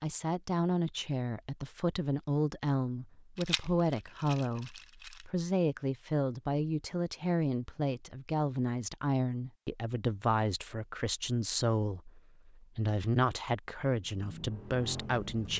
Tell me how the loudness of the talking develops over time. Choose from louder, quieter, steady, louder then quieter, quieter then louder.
steady.